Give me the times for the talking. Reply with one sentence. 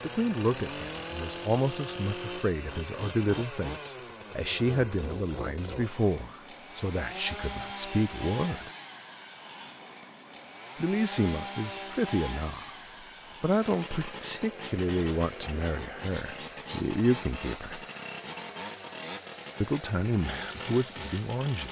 You can hear the talking from 0.0 to 8.7 s, from 10.8 to 12.7 s, from 13.4 to 17.8 s and from 19.6 to 21.6 s.